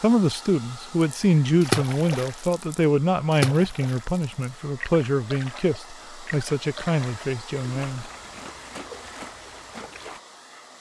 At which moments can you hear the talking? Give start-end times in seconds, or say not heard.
0.0-8.1.